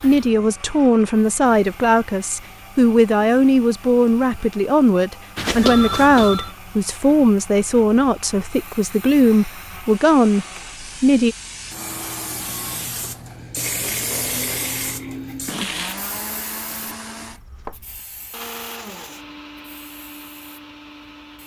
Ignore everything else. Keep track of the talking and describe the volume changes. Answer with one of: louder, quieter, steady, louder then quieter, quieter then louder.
steady.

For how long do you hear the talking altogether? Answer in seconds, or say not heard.
11 s.